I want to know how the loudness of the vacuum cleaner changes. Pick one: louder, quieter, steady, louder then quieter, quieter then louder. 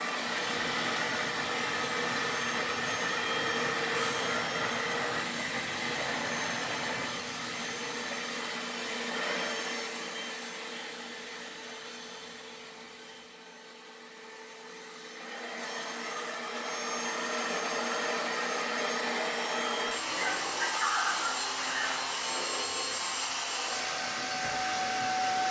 quieter then louder.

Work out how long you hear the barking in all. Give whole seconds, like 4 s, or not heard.
2 s.